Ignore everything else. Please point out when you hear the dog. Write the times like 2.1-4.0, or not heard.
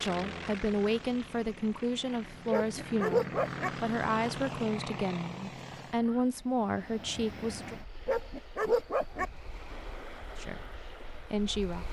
2.5-3.7, 8.1-9.3.